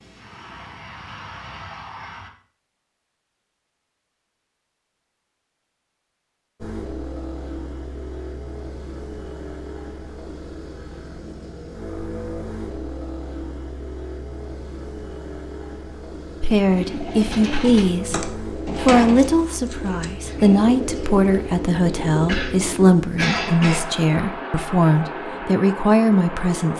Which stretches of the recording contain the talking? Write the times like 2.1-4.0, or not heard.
16.4-26.7.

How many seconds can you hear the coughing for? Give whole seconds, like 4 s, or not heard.
2 s.